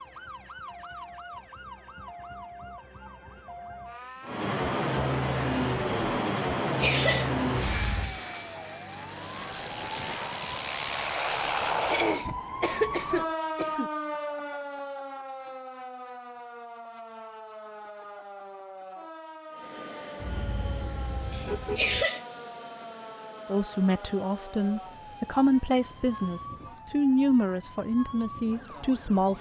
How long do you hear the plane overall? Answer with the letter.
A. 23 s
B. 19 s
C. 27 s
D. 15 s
D.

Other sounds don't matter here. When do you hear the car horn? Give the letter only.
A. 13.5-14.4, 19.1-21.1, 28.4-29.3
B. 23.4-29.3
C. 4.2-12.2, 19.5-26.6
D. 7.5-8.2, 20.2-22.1
D.